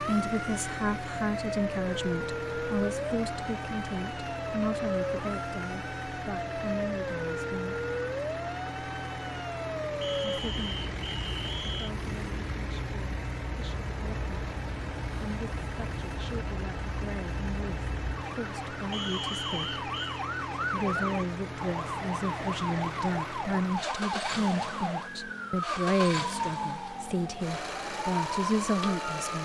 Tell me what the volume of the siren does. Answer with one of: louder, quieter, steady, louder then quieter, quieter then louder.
quieter then louder.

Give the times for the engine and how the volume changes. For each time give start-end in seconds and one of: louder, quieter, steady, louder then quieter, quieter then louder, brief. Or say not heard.
0.0-29.4 steady.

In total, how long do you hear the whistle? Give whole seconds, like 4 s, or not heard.
3 s.